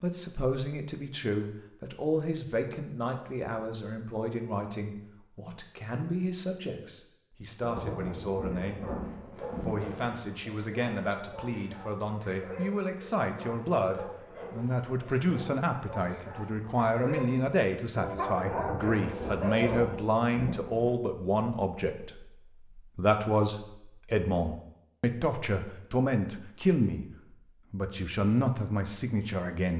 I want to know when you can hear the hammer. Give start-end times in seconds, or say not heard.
not heard.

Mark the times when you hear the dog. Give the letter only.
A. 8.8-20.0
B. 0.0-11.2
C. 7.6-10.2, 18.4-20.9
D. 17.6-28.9
A.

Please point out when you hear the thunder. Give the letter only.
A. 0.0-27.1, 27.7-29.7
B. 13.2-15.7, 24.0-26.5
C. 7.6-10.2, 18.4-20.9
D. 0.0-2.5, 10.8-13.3
C.